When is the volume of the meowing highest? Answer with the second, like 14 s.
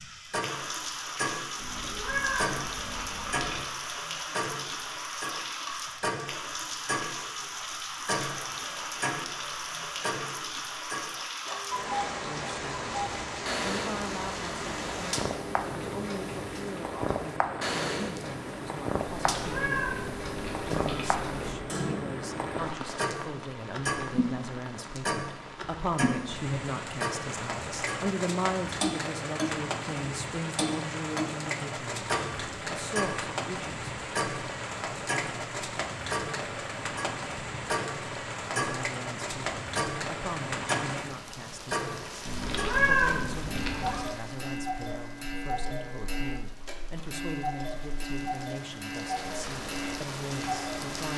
43 s.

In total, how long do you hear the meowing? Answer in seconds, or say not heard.
6 s.